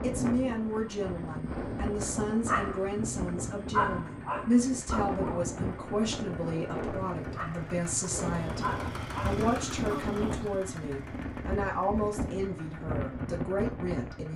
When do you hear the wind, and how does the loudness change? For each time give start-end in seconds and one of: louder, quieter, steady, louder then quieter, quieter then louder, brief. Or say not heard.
0.0-14.3 steady.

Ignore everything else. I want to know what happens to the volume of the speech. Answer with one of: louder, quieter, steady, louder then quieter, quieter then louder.
steady.